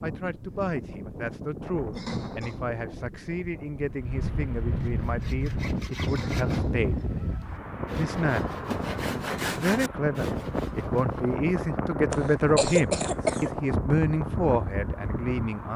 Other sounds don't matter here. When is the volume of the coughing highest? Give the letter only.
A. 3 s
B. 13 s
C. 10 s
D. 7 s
B.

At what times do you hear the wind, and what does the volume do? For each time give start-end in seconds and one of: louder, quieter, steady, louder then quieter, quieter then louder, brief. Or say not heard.
0.0-15.7 louder.